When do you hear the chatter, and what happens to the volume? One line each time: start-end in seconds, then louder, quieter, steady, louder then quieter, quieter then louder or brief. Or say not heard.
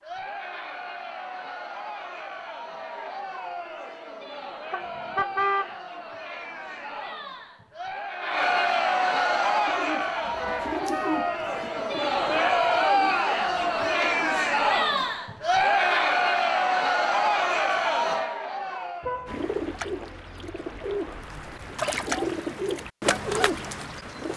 0.0-19.3 louder.